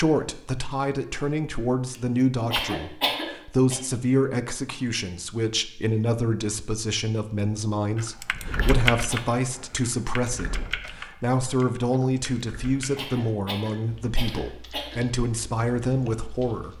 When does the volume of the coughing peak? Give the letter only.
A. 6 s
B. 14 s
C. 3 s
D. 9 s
C.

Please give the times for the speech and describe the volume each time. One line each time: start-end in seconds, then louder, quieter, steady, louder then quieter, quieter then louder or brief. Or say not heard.
0.0-16.7 steady.